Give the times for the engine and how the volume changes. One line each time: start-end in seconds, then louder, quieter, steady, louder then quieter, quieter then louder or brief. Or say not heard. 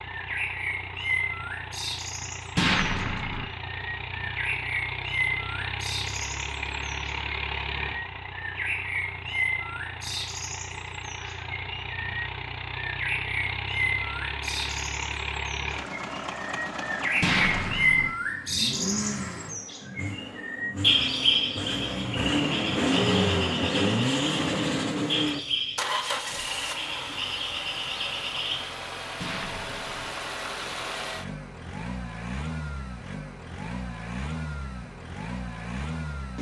0.0-36.3 louder then quieter.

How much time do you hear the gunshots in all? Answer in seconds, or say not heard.
3 s.